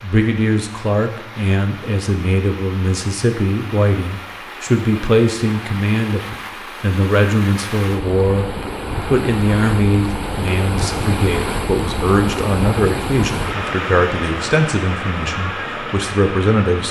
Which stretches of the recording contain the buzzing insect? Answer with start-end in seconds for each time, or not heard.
not heard.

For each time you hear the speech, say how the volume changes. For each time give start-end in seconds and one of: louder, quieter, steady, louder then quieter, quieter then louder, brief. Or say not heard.
0.0-16.8 steady.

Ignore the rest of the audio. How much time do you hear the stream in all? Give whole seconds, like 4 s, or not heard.
17 s.